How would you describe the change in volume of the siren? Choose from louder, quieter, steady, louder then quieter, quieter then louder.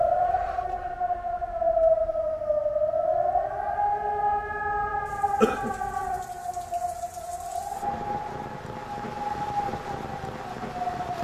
quieter.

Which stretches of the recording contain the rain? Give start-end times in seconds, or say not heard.
5.0-11.1.